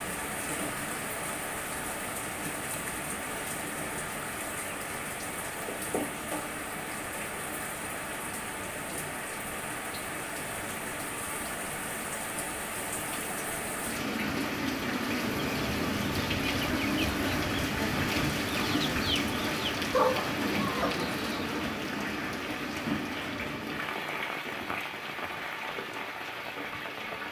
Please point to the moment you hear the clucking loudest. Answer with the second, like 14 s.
20 s.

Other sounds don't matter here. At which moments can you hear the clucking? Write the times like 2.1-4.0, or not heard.
15.2-21.6.